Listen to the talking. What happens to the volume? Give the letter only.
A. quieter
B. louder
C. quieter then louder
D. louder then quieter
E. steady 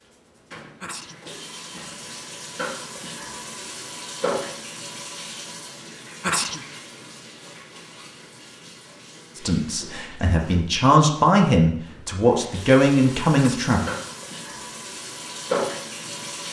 B.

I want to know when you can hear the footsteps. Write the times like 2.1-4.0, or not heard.
not heard.